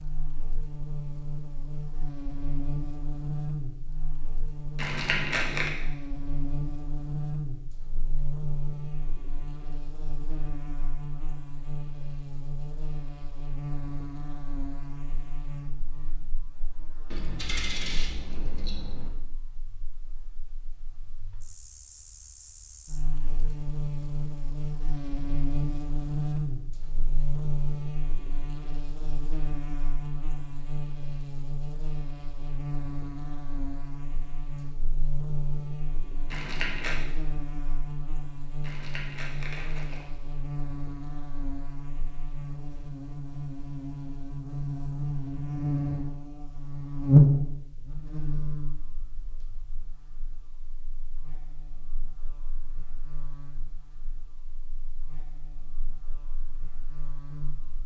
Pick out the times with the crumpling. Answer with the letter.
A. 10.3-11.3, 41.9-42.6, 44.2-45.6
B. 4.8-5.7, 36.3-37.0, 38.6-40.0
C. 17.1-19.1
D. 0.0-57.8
B.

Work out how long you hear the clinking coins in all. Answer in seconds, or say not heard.
2 s.